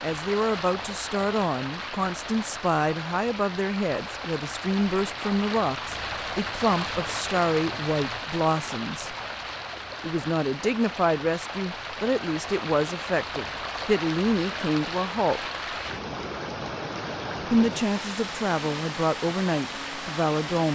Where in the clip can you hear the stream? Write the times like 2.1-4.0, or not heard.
0.0-20.7.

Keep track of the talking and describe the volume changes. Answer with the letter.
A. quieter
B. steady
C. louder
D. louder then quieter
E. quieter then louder
B.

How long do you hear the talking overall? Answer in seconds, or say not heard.
18 s.